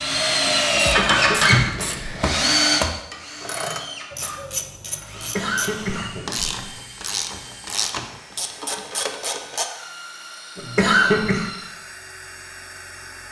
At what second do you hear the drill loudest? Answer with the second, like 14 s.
1 s.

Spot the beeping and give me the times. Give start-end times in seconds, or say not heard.
not heard.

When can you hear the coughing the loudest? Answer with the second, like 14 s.
11 s.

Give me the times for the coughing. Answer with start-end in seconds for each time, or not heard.
0.8-2.2, 5.2-6.5, 10.6-11.4.